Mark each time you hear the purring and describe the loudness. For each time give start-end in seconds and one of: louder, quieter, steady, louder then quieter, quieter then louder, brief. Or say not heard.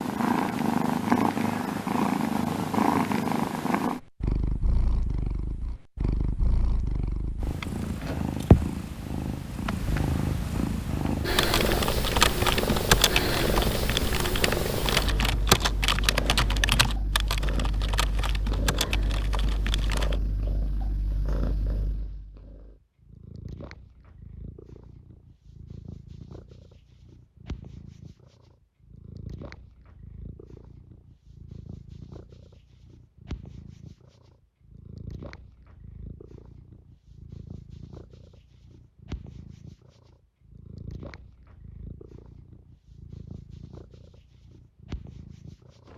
0.0-45.9 quieter.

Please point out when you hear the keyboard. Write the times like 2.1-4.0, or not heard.
11.3-20.1.